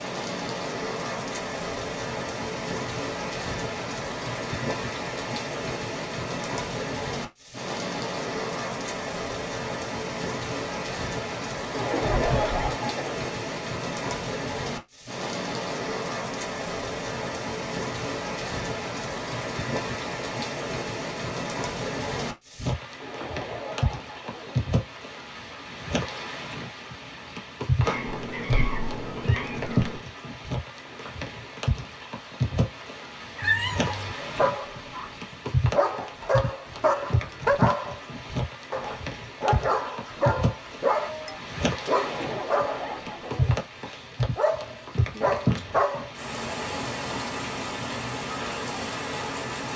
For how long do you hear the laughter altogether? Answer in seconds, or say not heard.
5 s.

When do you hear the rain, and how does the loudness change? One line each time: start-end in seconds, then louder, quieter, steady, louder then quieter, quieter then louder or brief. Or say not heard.
0.0-49.7 steady.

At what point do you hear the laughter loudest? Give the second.
12 s.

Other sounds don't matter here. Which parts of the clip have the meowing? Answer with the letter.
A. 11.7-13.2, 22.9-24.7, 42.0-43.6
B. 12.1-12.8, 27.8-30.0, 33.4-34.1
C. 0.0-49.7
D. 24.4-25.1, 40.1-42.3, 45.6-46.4
B.